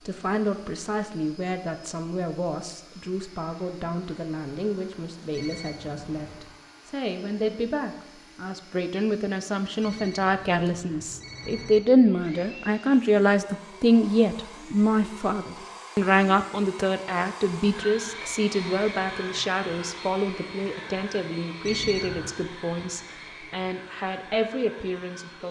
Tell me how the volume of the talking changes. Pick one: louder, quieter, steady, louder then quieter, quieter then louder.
louder then quieter.